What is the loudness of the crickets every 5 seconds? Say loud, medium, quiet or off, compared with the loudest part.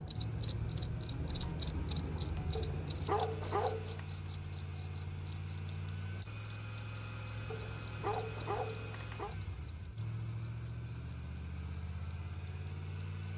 loud, medium, quiet.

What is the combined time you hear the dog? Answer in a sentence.
The dog can be heard for 3 seconds in total.